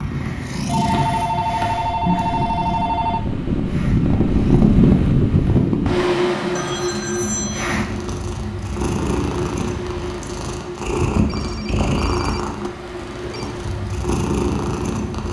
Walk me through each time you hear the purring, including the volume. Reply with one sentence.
The purring can be heard from 0.0 to 15.2 s, getting quieter then louder.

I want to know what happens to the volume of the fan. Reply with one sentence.
The volume of the fan goes down.